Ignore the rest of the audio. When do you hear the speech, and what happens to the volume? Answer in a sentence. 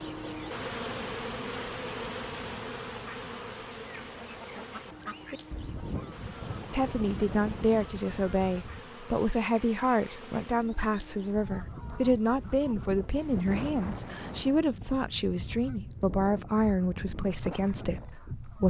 The speech can be heard from 6.7 to 18.6 s, at a steady volume.